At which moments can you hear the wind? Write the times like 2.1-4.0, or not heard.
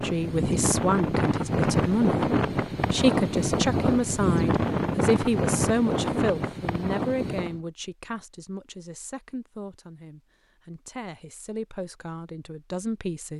0.0-7.6.